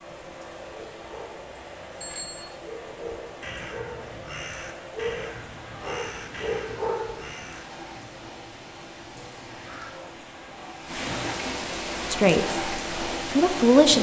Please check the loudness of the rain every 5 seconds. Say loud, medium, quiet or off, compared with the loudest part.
medium, medium, loud.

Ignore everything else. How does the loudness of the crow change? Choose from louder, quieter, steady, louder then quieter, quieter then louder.
quieter.